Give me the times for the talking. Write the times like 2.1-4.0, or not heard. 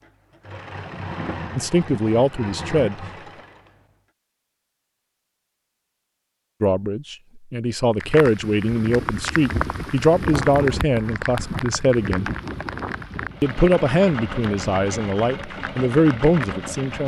1.6-3.0, 6.6-12.3, 13.4-17.0.